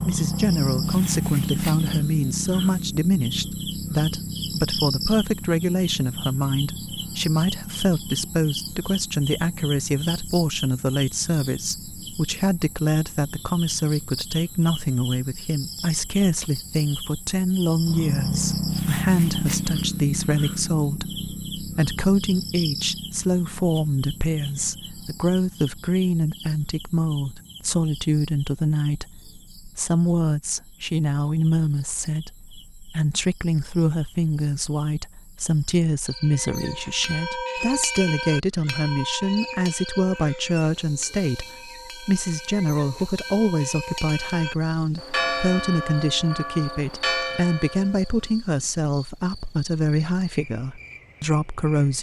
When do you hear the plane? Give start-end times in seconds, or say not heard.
not heard.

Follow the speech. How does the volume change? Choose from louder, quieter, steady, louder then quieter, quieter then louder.
steady.